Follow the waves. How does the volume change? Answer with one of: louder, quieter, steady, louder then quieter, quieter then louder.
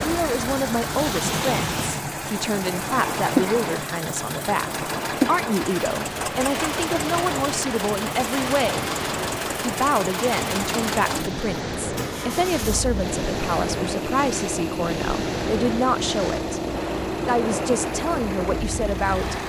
steady.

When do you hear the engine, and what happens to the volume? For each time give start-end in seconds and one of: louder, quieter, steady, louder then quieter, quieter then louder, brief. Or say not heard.
0.0-19.4 steady.